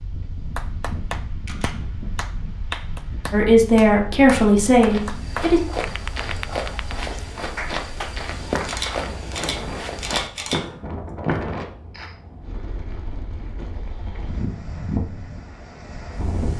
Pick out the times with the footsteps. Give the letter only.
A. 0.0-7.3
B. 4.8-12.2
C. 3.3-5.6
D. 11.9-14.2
B.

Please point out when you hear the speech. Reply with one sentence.
You can hear the speech from 3.3 to 5.6 s.